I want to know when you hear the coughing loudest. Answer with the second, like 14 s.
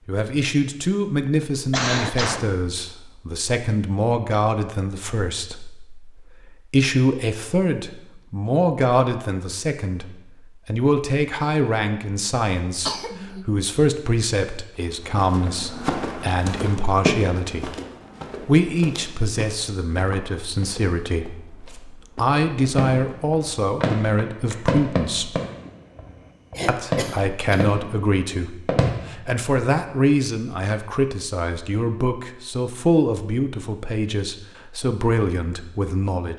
2 s.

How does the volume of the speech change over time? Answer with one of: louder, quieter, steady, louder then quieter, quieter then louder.
steady.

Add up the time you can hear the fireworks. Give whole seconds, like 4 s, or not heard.
7 s.